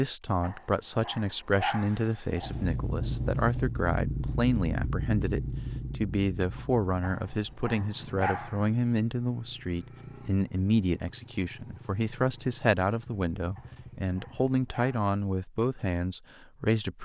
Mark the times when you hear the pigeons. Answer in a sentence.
The pigeons can't be heard in this clip.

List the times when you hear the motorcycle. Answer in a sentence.
You can hear the motorcycle from 2.4 to 14.6 s.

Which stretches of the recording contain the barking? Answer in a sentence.
The barking can be heard from 0.4 to 2.6 s, from 7.0 to 8.7 s and from 13.6 to 15.1 s.